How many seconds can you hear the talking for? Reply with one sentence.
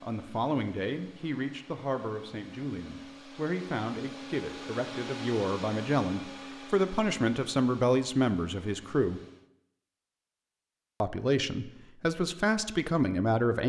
The talking can be heard for 12 seconds in total.